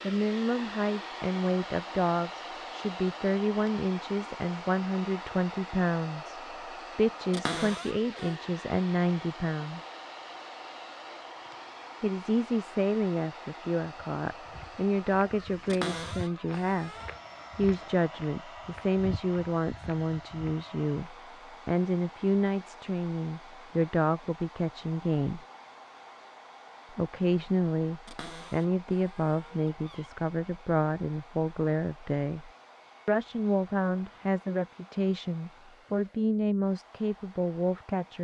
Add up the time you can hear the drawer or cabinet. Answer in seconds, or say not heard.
5 s.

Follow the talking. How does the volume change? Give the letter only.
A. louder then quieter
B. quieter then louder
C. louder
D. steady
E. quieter
D.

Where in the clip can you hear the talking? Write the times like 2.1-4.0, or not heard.
0.0-9.8, 12.0-16.9, 17.6-25.4, 26.9-38.1.